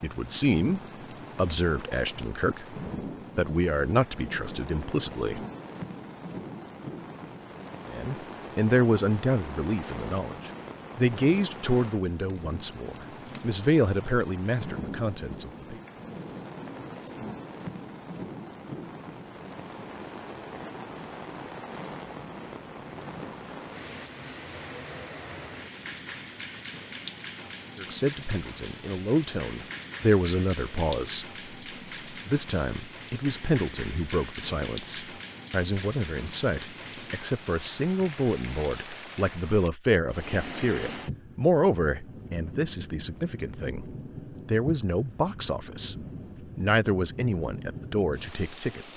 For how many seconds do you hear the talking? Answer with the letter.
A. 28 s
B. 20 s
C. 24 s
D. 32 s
D.